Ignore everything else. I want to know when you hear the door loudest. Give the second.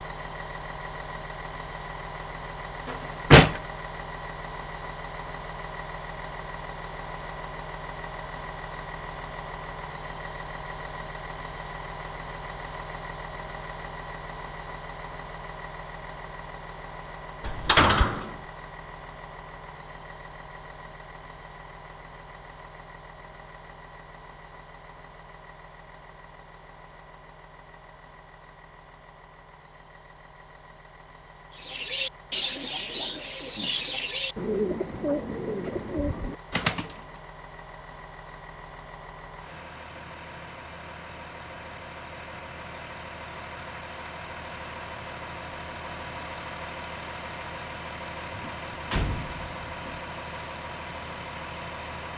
3 s.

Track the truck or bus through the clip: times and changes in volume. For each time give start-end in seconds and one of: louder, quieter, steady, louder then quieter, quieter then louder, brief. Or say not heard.
0.0-52.1 quieter then louder.